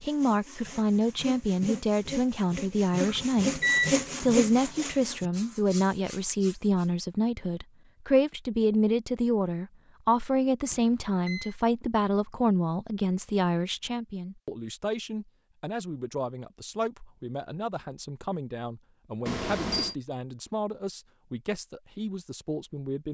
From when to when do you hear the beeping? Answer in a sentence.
You can hear the beeping from 3.0 to 4.0 s, from 10.7 to 11.6 s and from 19.2 to 19.9 s.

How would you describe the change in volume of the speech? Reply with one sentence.
The loudness of the speech goes down.